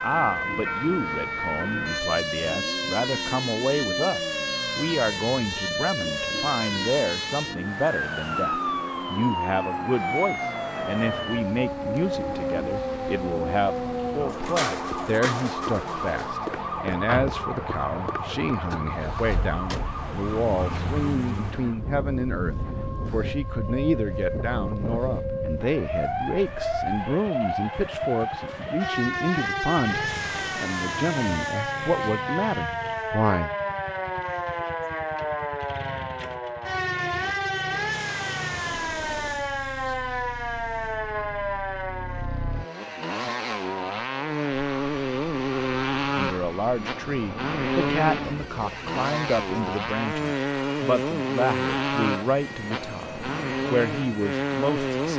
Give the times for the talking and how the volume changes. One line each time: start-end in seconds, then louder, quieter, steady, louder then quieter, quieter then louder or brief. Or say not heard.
0.0-33.5 steady
46.1-55.1 steady.